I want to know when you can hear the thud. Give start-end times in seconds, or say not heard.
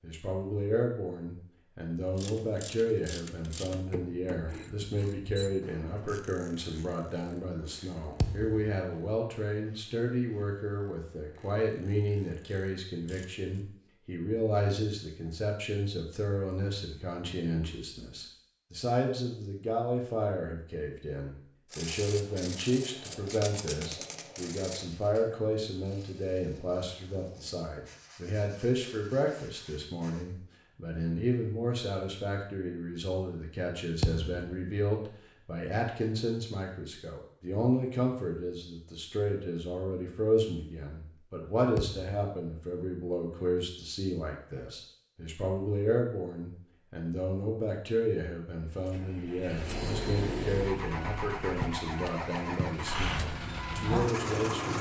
8.2-8.7, 34.0-34.5, 41.8-42.2.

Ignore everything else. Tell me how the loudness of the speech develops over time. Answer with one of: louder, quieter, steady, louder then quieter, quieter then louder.
steady.